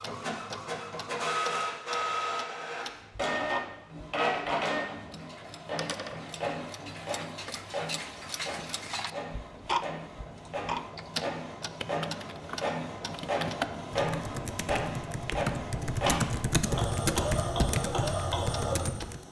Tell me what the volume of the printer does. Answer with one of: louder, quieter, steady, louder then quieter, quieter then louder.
quieter then louder.